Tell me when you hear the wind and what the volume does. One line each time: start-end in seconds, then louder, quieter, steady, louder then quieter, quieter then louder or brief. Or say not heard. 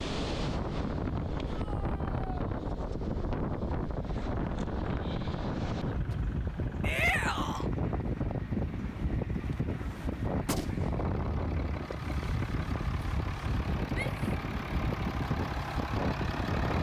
0.0-16.7 steady.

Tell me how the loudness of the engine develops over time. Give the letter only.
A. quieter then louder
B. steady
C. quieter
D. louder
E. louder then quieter
D.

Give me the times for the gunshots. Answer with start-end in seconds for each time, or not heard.
10.4-11.1.